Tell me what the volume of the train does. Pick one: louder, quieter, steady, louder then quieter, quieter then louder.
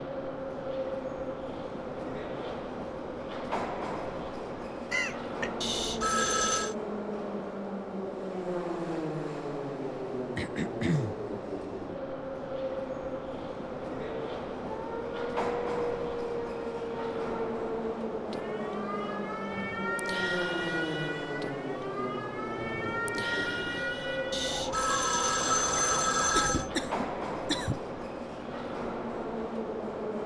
steady.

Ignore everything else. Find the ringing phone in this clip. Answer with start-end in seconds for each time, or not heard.
5.6-6.8, 24.3-26.7.